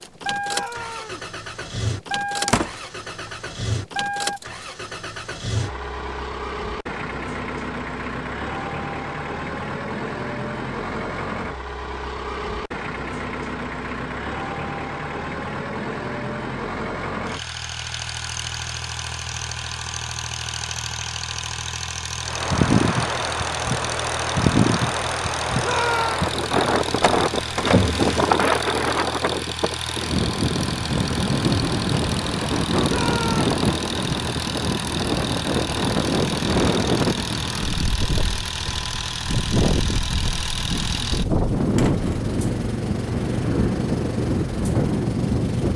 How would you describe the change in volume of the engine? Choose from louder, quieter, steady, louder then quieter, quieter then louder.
steady.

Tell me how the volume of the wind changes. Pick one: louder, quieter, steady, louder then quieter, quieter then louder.
steady.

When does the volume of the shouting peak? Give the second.
26 s.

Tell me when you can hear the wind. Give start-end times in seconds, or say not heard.
22.2-45.7.